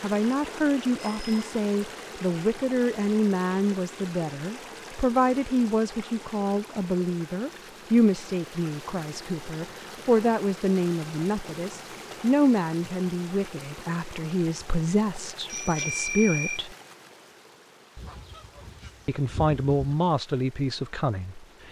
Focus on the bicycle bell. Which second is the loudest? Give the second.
16 s.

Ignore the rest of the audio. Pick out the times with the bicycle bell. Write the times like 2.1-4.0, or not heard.
0.9-1.4, 15.4-16.6.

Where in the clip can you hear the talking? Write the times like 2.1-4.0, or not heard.
0.0-16.7, 19.1-21.6.